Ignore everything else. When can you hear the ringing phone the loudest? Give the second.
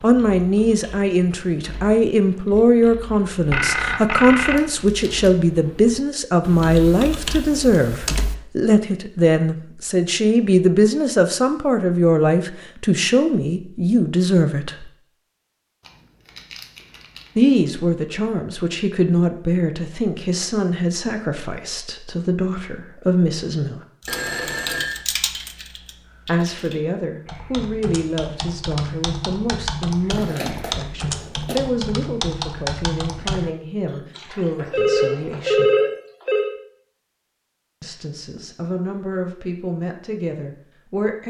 36 s.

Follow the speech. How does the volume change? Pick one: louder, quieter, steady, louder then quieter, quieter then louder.
quieter.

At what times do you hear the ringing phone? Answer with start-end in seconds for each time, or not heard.
3.5-4.6, 24.1-25.1, 33.9-36.5.